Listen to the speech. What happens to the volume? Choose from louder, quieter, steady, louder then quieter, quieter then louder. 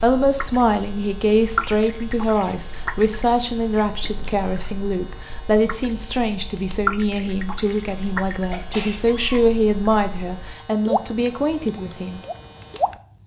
steady.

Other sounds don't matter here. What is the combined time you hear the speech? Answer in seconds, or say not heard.
12 s.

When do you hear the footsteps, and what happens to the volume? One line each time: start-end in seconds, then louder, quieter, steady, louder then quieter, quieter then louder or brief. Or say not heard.
not heard.